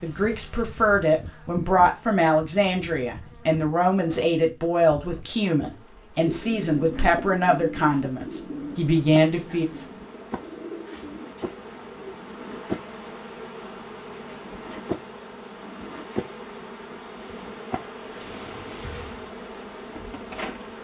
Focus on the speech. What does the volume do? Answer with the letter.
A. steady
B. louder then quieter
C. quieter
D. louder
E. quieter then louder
A.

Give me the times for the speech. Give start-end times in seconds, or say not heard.
0.0-9.7.